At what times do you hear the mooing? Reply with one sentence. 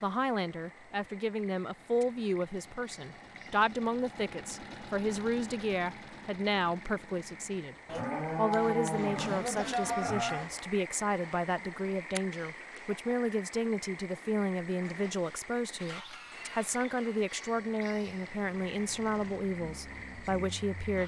You can hear the mooing from 7.8 to 10.5 s.